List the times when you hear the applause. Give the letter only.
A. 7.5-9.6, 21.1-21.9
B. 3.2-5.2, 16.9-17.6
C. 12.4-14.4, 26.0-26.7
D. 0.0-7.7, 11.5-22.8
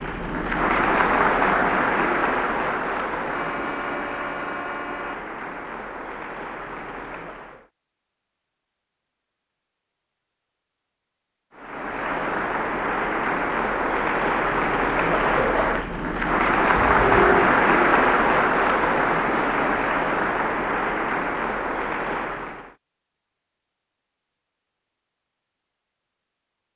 D.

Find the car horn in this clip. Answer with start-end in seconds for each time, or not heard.
3.2-5.2, 16.9-17.6.